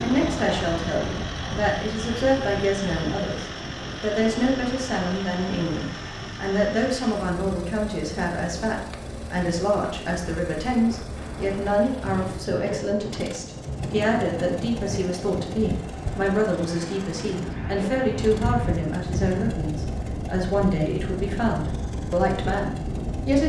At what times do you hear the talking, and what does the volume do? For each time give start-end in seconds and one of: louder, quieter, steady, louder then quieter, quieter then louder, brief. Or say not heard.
0.0-23.4 steady.